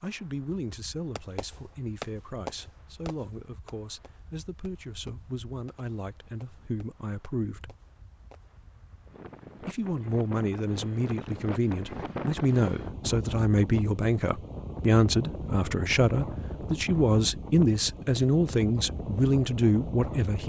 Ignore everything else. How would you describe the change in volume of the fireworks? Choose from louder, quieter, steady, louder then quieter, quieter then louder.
quieter.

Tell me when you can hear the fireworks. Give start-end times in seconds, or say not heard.
1.1-8.5.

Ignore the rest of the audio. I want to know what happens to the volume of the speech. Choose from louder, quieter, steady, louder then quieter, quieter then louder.
louder.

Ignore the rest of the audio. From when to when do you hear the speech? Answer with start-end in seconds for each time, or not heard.
0.0-7.8, 9.6-20.4.